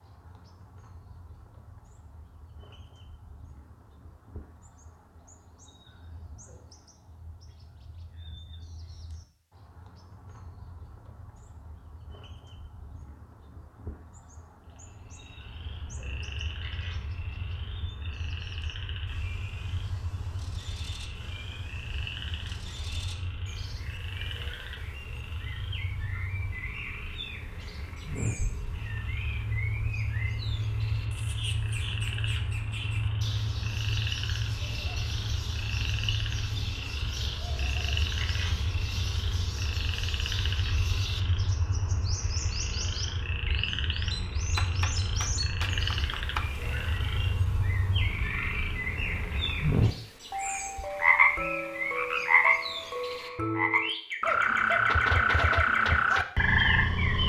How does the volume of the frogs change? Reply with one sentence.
The volume of the frogs goes up.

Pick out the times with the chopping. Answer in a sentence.
The chopping can be heard from 44.5 to 46.5 s.